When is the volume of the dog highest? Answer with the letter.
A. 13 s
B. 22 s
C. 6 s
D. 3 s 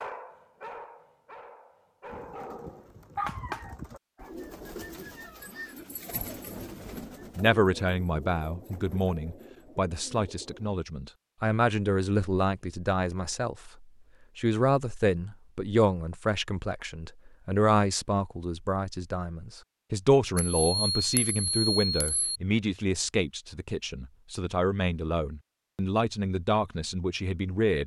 D.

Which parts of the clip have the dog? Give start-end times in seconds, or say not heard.
0.0-4.3.